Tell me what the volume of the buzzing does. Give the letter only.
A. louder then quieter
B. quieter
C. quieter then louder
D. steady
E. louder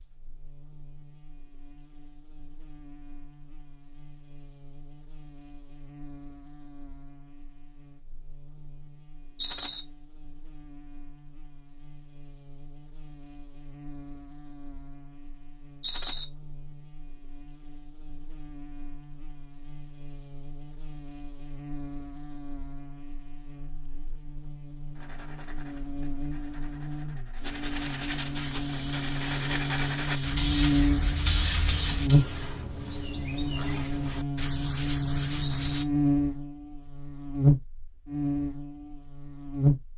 E.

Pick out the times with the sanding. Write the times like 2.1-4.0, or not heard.
24.9-35.9.